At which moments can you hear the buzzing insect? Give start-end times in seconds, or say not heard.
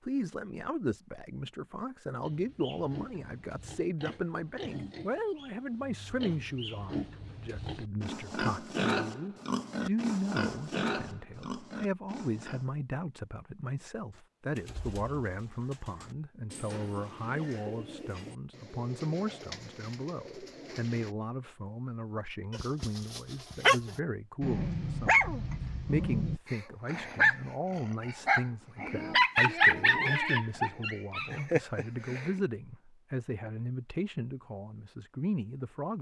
not heard.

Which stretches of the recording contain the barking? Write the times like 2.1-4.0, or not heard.
22.5-32.3.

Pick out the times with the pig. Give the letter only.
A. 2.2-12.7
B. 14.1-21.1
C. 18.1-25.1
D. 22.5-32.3
A.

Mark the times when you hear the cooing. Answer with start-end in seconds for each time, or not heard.
14.1-21.1.